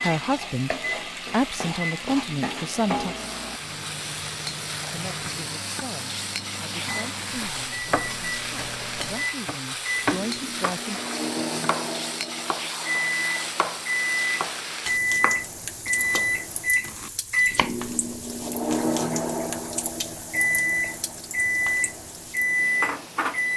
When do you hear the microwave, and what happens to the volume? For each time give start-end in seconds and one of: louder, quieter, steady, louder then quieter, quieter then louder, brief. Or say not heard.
0.1-23.5 louder.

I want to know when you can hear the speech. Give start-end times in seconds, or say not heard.
0.0-3.1, 4.9-11.0.